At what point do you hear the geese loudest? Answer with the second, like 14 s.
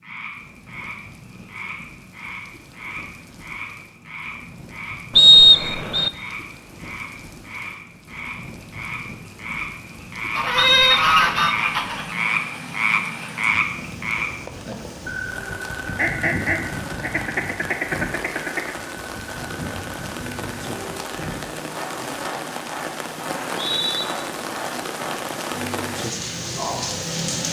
11 s.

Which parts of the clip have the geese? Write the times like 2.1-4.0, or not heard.
10.3-12.1, 15.9-18.7.